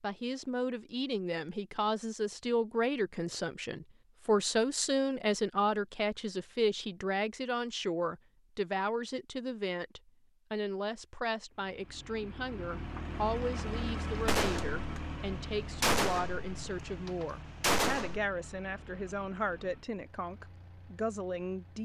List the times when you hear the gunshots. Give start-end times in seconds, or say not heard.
14.2-18.2.